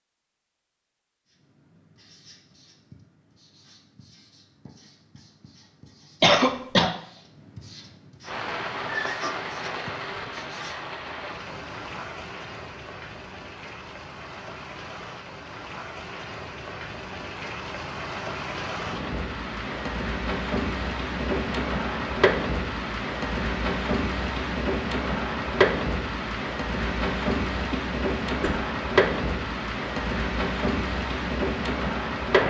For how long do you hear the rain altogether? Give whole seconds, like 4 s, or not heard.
24 s.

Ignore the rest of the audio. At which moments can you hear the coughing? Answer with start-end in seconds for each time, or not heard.
6.2-6.9, 27.7-28.6.